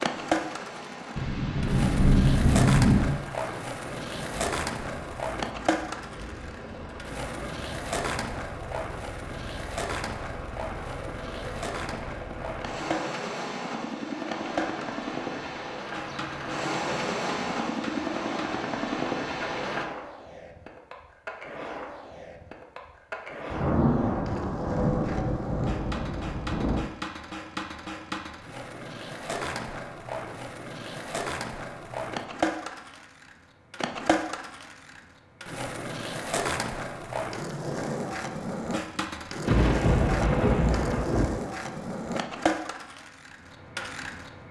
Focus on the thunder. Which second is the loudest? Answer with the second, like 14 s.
3 s.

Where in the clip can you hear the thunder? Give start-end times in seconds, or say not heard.
1.1-3.1, 23.5-26.9, 39.5-41.3.